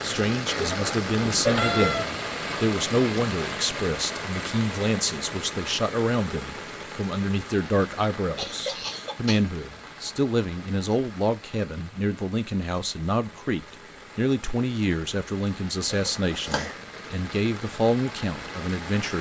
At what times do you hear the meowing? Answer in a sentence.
The meowing can be heard from 1.2 to 2.0 s.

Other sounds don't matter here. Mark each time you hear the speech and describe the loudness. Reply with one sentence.
You can hear the speech from 0.0 to 19.1 s, at a steady volume.